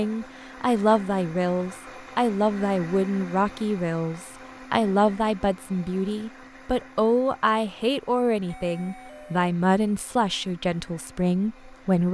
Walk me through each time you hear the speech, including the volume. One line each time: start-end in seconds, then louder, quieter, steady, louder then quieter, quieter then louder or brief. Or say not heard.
0.0-12.0 steady.